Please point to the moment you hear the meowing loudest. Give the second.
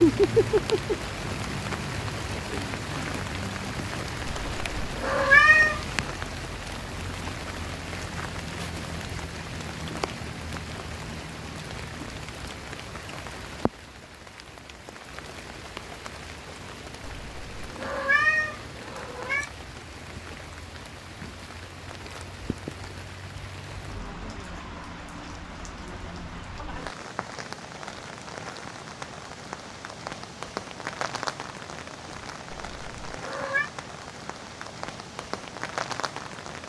5 s.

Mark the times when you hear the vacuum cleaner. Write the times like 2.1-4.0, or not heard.
not heard.